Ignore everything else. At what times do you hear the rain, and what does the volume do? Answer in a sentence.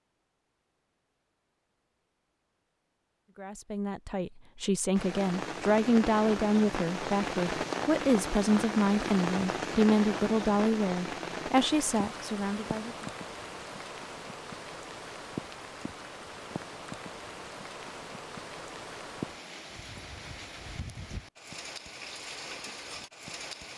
You can hear the rain from 5.0 to 23.7 s, getting quieter.